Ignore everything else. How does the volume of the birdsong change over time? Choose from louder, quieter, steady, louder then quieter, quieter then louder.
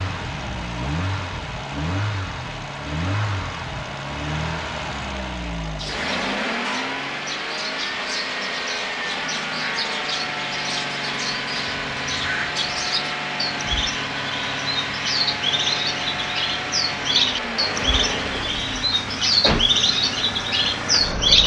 louder.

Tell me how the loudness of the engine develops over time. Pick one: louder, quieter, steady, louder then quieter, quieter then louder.
steady.